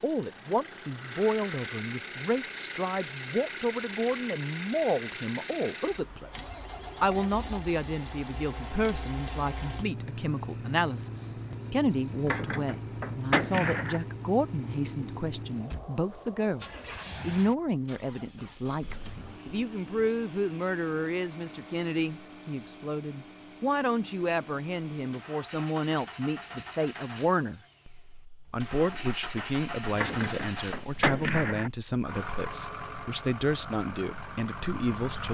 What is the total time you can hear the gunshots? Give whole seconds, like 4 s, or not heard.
4 s.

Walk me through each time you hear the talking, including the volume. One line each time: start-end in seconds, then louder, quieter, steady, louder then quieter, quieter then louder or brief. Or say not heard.
0.0-35.2 steady.